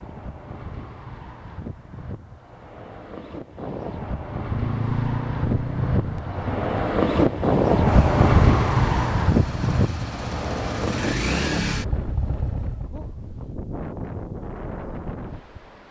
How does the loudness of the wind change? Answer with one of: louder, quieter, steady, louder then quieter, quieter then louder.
louder then quieter.